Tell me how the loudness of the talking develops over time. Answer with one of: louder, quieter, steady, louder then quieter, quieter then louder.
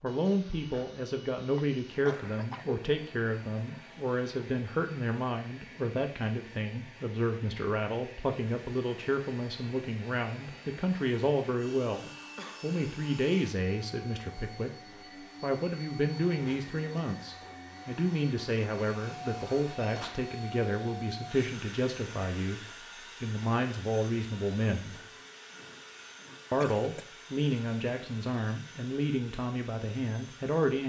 steady.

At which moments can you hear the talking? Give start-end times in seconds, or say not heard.
0.0-25.0, 26.5-30.8.